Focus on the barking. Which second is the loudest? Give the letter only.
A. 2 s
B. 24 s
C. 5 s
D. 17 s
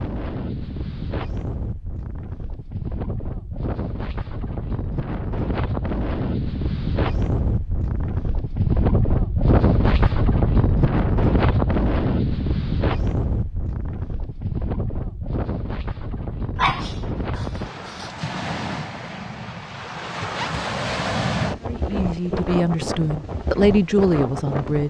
D.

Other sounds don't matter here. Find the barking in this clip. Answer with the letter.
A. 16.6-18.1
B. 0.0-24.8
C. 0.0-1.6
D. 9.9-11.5
A.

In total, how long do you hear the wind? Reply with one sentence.
The wind can be heard for 25 seconds in total.